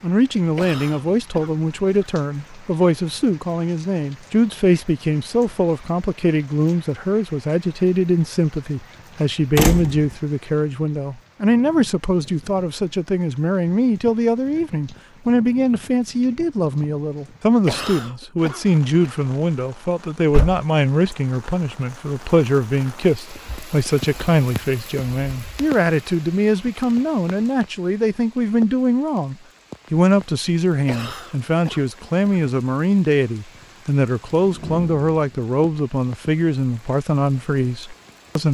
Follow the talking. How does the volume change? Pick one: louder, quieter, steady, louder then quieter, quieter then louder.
steady.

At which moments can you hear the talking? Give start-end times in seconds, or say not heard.
0.0-38.4.